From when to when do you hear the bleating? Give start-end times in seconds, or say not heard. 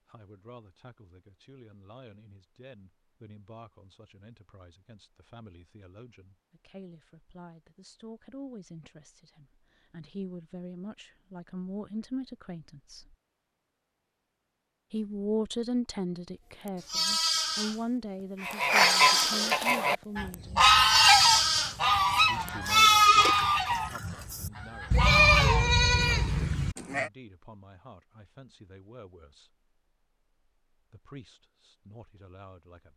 16.6-17.8, 18.6-19.6, 20.3-21.8, 22.4-27.1.